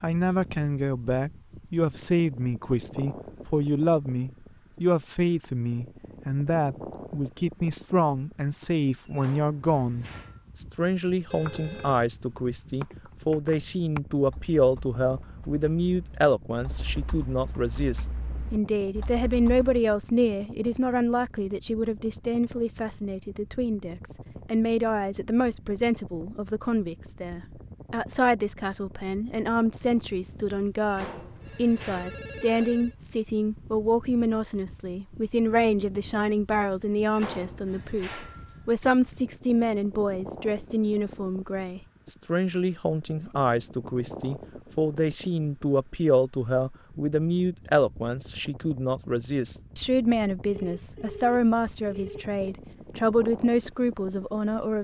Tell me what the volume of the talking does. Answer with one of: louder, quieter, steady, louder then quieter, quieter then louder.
steady.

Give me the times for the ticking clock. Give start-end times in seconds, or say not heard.
not heard.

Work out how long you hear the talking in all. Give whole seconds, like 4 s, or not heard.
55 s.